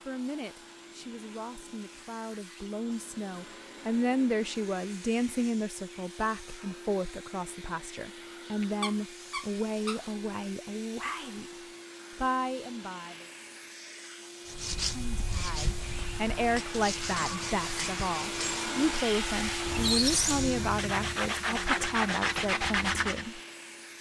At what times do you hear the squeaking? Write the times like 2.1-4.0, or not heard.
8.6-10.0, 19.6-21.2.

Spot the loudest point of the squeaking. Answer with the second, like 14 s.
20 s.